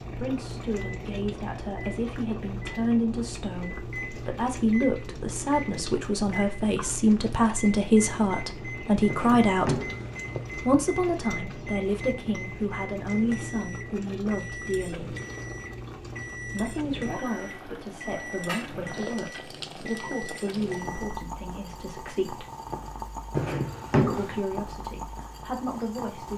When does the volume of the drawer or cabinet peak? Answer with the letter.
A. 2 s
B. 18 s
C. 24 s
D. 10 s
C.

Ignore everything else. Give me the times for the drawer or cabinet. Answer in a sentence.
The drawer or cabinet can be heard from 9.1 to 10.6 s and from 23.4 to 24.4 s.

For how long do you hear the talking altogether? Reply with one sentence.
The talking can be heard for 23 seconds in total.